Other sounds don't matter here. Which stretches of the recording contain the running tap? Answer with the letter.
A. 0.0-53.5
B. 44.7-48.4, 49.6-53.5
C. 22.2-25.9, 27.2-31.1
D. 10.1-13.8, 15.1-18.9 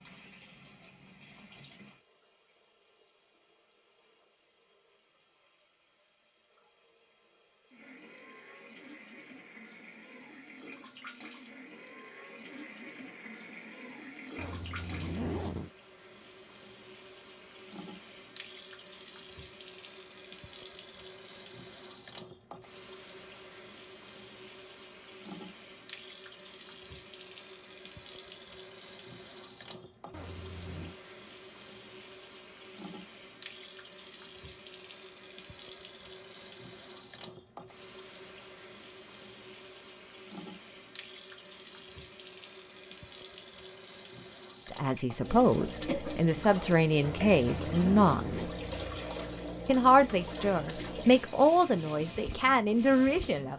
A.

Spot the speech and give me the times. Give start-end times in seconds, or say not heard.
44.7-48.4, 49.6-53.5.